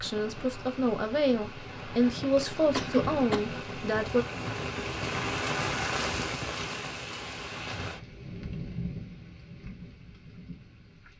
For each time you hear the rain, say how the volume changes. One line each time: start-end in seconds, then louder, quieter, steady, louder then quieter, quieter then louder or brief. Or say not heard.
0.0-11.1 louder then quieter.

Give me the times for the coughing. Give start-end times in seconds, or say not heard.
2.7-3.5.